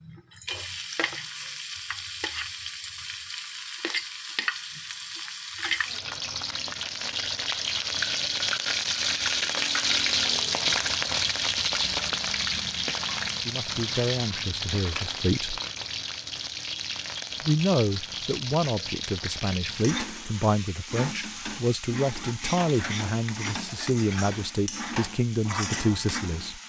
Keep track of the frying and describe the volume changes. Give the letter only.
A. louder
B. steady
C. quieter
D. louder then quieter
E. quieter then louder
D.